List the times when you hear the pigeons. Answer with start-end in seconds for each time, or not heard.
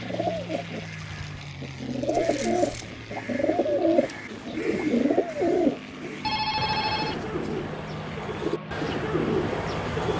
0.0-10.1.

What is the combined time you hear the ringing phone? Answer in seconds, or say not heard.
2 s.